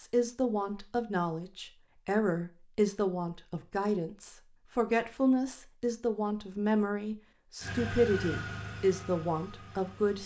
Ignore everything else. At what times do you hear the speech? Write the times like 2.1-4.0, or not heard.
0.0-10.2.